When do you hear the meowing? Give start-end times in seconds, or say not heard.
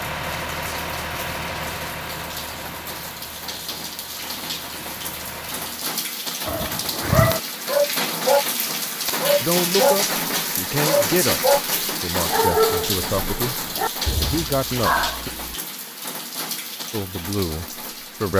not heard.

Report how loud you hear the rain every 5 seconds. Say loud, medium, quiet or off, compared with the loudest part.
medium, loud, loud, medium.